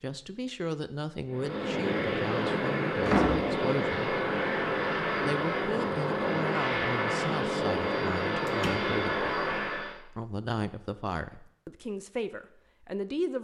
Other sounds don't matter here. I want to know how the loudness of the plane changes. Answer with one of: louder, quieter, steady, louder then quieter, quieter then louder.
steady.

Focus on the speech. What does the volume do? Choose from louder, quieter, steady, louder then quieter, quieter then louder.
steady.